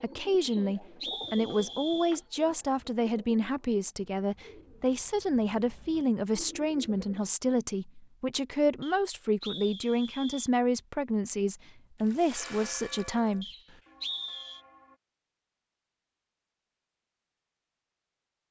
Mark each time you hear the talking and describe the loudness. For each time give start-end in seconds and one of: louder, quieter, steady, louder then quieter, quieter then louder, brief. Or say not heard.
0.0-13.4 steady.